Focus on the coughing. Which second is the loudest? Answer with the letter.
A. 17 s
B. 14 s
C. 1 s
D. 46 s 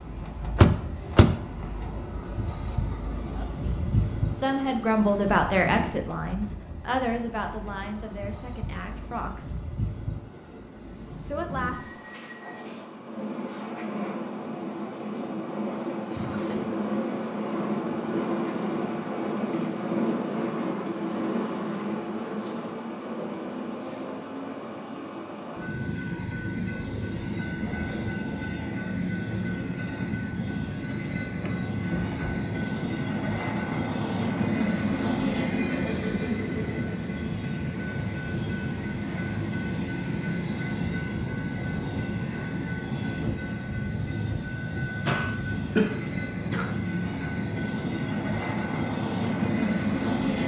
D.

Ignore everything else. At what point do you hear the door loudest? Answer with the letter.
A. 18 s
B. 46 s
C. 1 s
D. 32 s
C.